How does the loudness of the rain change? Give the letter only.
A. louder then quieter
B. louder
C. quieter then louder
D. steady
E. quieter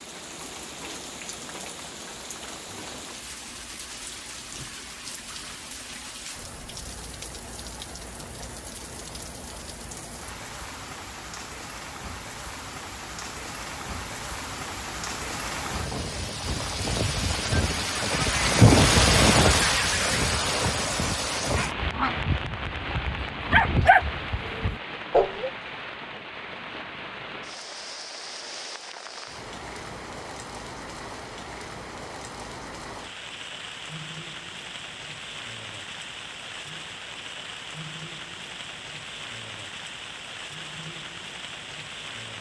A.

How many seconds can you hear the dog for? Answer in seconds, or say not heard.
4 s.